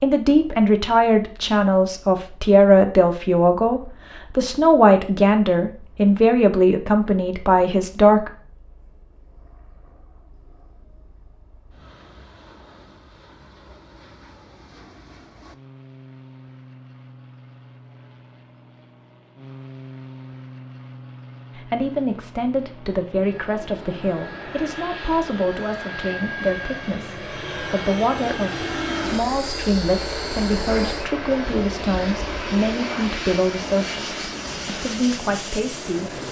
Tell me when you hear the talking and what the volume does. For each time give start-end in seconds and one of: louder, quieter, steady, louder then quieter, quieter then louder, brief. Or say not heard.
0.0-8.3 steady
21.6-36.1 steady.